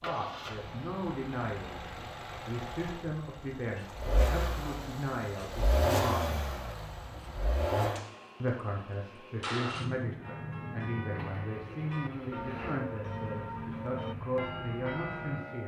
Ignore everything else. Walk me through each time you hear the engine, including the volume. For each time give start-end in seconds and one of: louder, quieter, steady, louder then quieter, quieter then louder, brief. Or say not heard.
0.0-15.6 louder then quieter.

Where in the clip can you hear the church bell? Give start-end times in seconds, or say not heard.
10.2-15.6.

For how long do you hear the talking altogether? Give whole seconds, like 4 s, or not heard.
14 s.